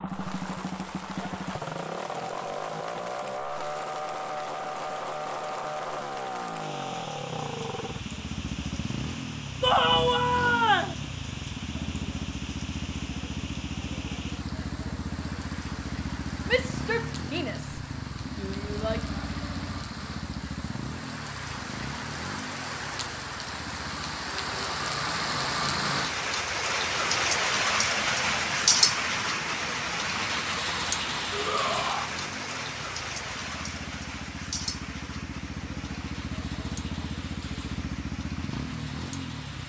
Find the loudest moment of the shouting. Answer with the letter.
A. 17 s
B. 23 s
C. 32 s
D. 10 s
D.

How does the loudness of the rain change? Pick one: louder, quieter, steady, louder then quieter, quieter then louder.
louder then quieter.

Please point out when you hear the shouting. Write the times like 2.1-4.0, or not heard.
9.6-10.9, 16.4-19.0, 31.3-32.1.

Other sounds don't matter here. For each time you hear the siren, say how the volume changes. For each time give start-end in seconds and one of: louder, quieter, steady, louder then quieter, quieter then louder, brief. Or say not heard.
not heard.